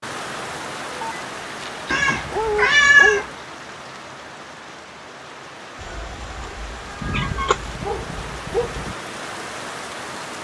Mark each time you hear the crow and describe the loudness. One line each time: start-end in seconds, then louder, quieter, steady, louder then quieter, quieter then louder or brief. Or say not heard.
not heard.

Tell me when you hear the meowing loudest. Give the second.
3 s.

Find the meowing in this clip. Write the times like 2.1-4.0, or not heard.
1.9-3.2, 5.8-7.8.